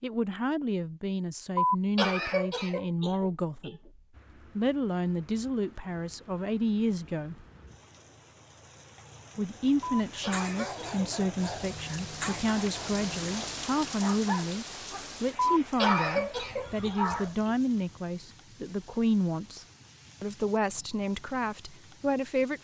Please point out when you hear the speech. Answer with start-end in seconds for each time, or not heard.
0.0-3.9, 4.5-7.5, 9.3-22.5.